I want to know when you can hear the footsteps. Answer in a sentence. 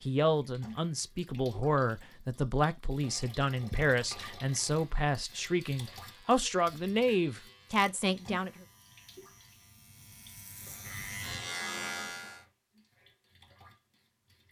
You can't hear the footsteps here.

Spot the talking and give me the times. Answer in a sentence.
The talking can be heard from 0.0 to 8.5 s.